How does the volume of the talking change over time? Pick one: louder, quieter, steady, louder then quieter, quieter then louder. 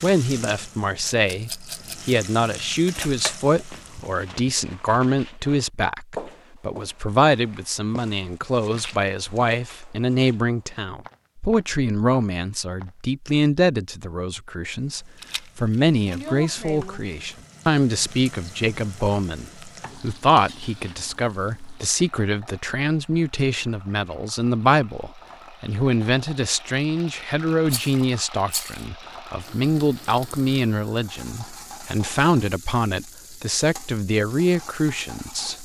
steady.